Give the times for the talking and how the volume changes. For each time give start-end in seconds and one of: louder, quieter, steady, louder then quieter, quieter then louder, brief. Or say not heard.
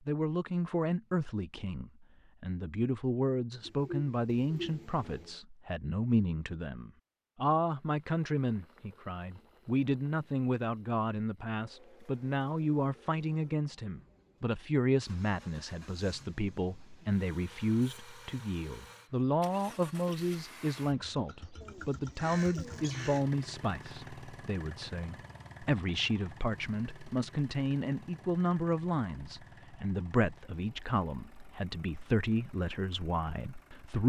0.1-34.0 steady.